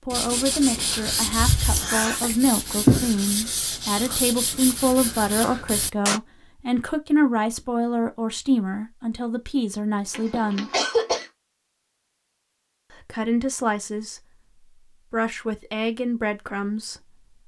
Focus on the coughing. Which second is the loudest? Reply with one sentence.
The loudest moment of the coughing is at 11 seconds.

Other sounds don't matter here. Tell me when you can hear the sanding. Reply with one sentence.
The sanding can be heard from 0.1 to 6.2 s.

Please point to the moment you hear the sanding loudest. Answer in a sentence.
The loudest moment of the sanding is at 3 seconds.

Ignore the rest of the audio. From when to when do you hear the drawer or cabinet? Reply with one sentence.
The drawer or cabinet can't be heard in this clip.